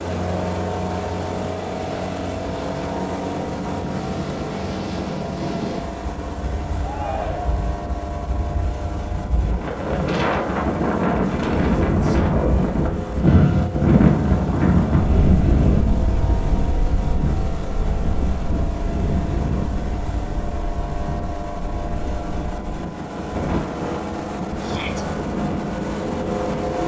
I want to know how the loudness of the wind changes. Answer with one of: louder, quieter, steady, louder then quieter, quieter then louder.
louder then quieter.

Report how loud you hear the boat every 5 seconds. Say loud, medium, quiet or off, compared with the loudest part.
loud, medium, medium, medium, medium, loud.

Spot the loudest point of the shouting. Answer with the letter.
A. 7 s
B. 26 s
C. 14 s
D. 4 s
A.